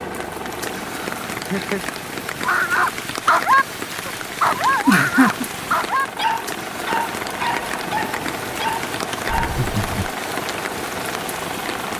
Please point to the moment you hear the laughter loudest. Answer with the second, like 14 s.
5 s.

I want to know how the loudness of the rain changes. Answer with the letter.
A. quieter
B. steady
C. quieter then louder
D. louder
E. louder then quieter
B.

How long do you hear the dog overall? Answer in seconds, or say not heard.
7 s.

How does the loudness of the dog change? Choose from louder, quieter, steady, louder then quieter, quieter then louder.
quieter.